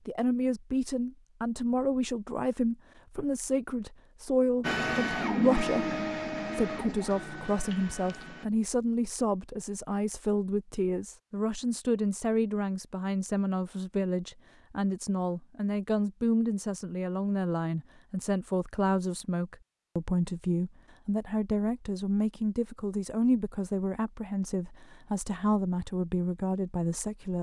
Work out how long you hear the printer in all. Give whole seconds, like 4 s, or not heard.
4 s.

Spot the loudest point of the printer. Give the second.
5 s.